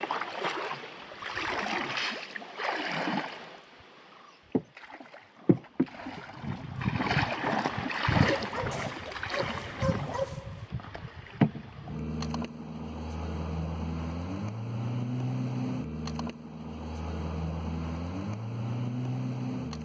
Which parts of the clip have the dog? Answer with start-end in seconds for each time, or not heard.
8.2-10.6.